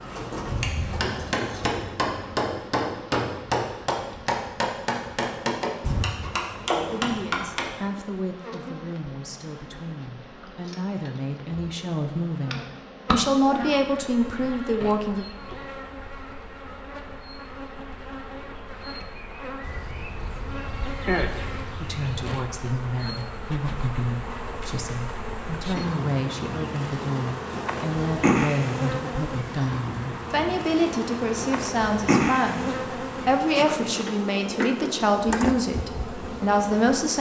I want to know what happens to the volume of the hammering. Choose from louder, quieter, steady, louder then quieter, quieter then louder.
steady.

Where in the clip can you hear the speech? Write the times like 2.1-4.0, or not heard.
6.9-15.2, 21.8-37.1.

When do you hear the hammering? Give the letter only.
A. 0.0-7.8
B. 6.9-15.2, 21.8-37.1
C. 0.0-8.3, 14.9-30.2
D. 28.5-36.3
A.